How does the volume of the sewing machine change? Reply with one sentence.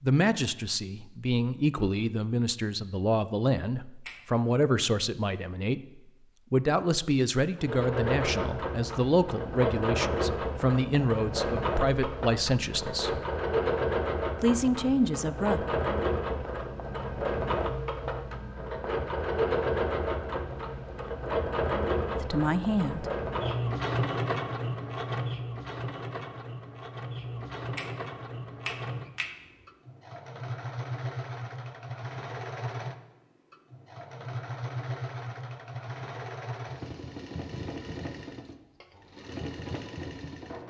The volume of the sewing machine goes down.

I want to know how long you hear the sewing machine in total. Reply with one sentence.
You can hear the sewing machine for 33 seconds altogether.